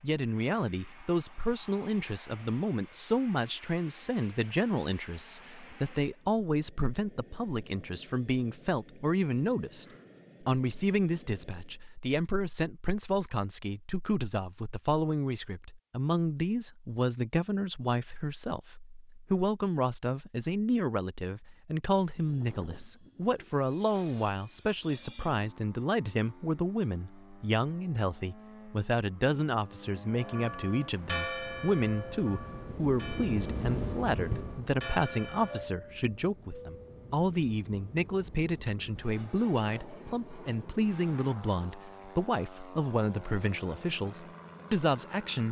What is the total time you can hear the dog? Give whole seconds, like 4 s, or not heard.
not heard.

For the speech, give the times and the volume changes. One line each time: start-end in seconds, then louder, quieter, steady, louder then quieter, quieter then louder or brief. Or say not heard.
0.0-45.4 steady.